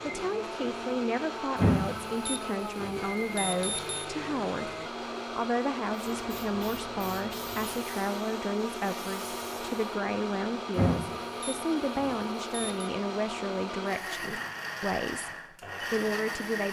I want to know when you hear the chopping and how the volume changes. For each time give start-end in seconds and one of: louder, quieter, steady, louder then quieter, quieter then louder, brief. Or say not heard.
not heard.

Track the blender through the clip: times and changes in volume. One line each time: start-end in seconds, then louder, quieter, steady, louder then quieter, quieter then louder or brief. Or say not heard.
0.0-16.6 steady.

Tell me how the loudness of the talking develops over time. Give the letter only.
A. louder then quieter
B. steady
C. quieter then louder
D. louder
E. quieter
B.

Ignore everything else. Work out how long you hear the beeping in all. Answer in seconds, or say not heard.
5 s.